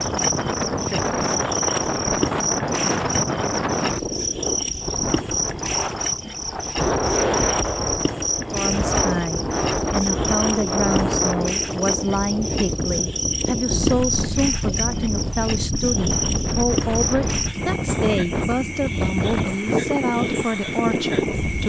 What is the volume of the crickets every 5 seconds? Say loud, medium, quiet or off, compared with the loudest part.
loud, loud, loud, loud, medium.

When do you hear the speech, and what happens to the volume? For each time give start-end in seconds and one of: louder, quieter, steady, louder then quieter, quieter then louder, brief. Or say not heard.
8.5-21.6 steady.